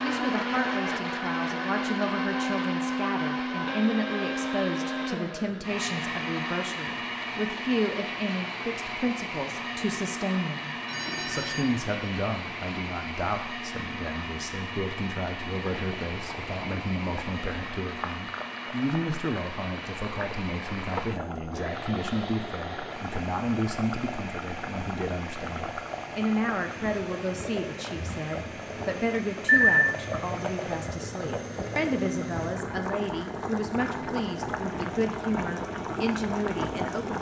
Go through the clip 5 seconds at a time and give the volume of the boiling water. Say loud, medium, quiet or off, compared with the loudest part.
off, off, off, medium, medium, medium, loud, loud.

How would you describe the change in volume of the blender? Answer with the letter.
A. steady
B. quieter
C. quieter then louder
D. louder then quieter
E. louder
B.